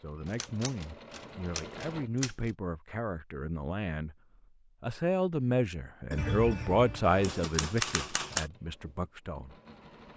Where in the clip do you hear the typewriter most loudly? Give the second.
8 s.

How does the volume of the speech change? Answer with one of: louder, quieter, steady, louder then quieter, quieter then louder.
louder then quieter.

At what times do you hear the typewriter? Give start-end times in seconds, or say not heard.
0.2-2.5, 6.2-8.4.